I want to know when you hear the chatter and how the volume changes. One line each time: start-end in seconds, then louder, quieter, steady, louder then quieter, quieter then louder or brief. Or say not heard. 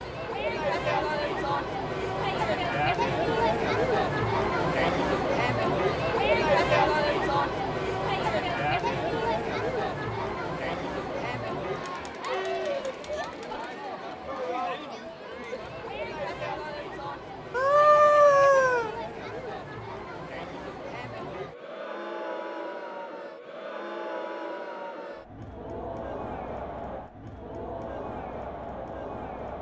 0.0-29.5 quieter.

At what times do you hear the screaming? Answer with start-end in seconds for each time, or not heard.
17.5-18.9.